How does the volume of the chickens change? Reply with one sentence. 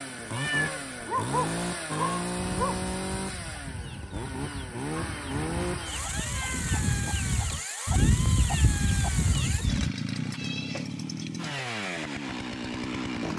The volume of the chickens goes up.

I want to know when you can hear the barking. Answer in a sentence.
The barking can be heard from 1.1 to 2.8 s.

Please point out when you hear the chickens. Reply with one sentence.
You can hear the chickens from 1.9 to 9.9 s.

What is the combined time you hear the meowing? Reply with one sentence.
You can hear the meowing for 4 seconds altogether.